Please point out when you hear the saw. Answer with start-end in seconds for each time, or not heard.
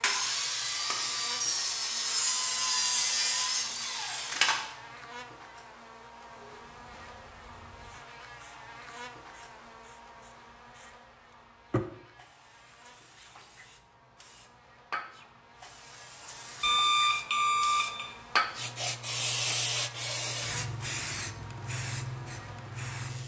0.0-4.7.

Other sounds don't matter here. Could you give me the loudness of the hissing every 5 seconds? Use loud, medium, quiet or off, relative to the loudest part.
off, quiet, medium, loud, loud.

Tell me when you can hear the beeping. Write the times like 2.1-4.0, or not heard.
16.6-18.1.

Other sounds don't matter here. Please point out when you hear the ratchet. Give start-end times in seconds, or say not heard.
not heard.